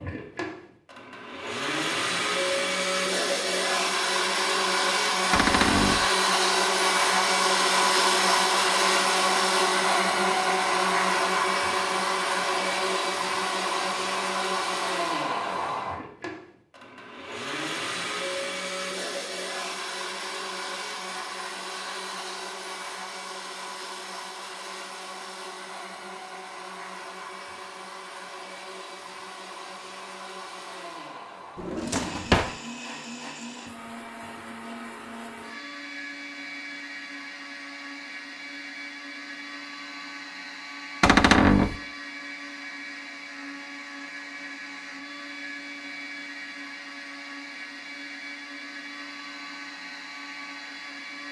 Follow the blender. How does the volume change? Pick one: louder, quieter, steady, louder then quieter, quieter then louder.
quieter.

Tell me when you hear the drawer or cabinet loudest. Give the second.
41 s.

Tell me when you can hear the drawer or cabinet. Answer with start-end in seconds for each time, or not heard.
5.3-6.0, 31.6-32.6, 41.0-41.8.